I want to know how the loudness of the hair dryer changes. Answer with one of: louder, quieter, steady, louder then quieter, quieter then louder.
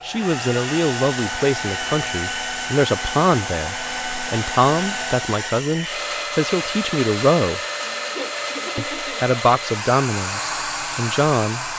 steady.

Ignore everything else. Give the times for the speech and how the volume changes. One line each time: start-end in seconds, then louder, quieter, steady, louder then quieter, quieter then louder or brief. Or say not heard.
0.0-7.6 steady
8.8-11.7 brief.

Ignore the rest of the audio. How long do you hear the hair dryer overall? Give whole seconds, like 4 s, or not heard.
12 s.